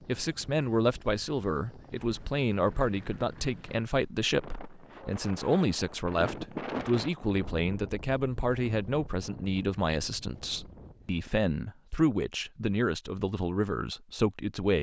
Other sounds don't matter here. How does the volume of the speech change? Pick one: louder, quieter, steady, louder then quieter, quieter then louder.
steady.